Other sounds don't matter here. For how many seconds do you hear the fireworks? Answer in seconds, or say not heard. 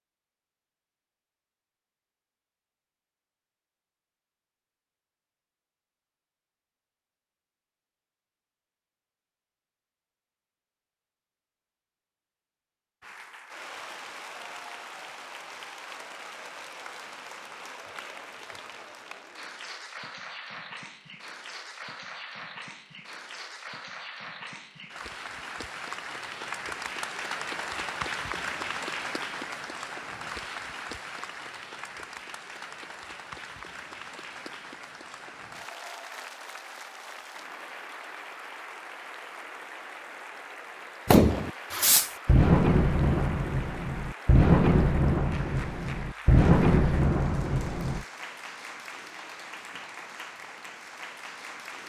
7 s.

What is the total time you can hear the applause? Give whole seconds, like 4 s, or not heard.
39 s.